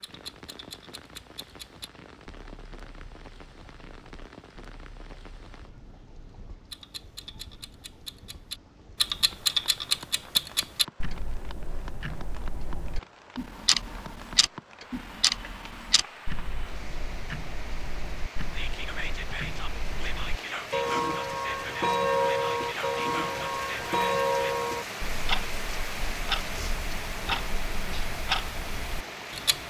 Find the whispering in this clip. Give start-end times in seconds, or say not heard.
18.5-24.6.